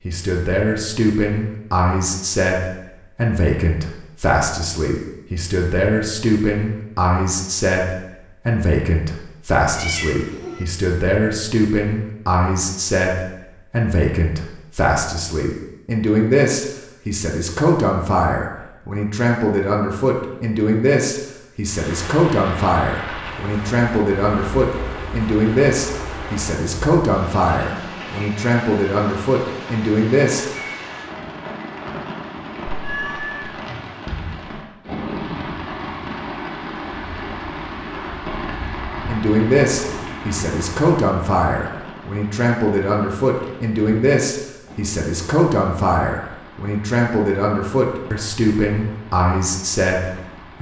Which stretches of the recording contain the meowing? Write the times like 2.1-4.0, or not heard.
9.8-10.7, 32.8-33.6.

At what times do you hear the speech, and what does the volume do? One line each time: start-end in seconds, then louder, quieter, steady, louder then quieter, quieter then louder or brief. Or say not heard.
0.1-30.4 steady
39.0-50.5 steady.